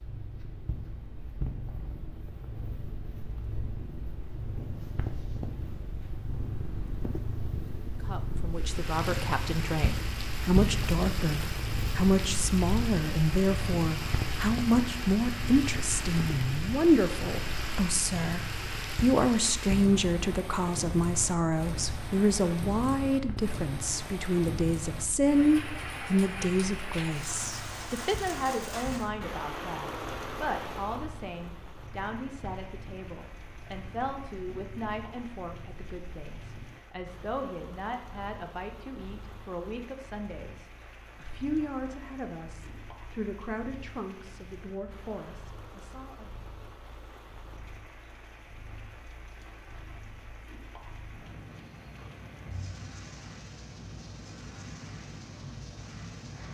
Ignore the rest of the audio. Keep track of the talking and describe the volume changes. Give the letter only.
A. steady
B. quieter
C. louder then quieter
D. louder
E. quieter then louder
B.